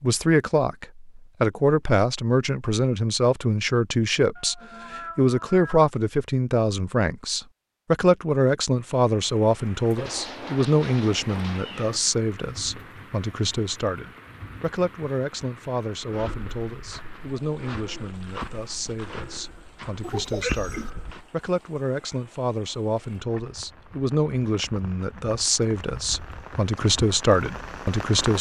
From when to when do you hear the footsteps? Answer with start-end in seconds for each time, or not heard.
15.9-21.3.